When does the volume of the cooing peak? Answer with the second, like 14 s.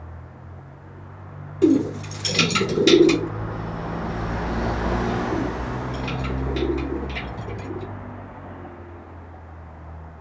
3 s.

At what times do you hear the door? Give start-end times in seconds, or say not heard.
not heard.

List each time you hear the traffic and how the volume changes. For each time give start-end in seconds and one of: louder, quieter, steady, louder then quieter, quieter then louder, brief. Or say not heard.
0.0-10.1 louder then quieter.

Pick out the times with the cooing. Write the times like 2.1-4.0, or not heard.
1.6-3.3, 5.3-8.0.